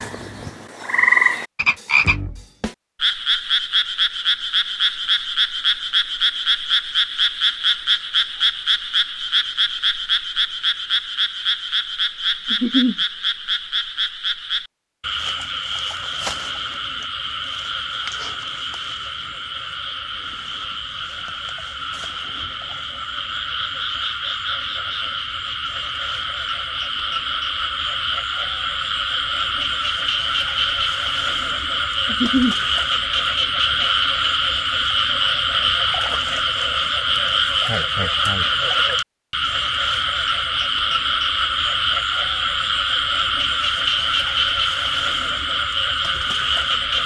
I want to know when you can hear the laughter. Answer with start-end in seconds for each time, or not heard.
12.5-12.9, 32.0-32.5.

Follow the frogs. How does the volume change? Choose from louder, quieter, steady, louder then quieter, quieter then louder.
quieter then louder.